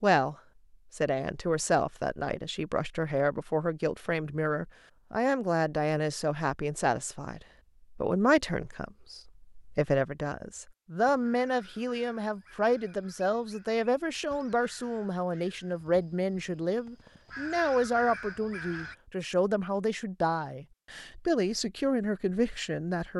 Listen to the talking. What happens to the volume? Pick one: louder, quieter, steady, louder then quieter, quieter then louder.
steady.